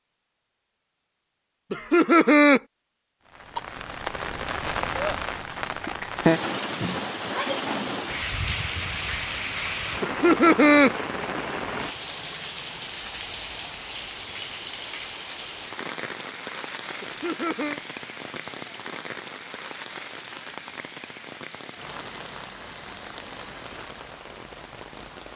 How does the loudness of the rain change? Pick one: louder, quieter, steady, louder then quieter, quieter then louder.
quieter.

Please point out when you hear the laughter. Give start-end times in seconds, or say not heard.
1.7-2.6, 10.0-10.9, 17.0-17.8.